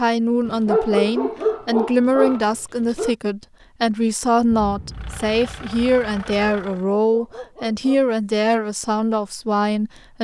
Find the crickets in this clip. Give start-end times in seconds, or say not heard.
not heard.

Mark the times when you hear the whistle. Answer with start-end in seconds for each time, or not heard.
not heard.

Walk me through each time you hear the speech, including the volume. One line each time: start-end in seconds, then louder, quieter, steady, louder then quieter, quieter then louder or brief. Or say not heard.
0.0-10.1 steady.